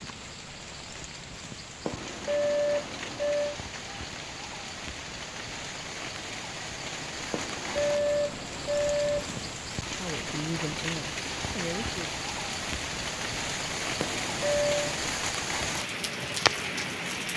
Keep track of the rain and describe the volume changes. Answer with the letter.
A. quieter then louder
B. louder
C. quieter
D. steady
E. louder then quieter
B.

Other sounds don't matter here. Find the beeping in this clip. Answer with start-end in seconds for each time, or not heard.
1.9-3.5, 7.3-9.6, 14.0-14.9.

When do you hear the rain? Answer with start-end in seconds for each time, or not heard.
0.0-17.3.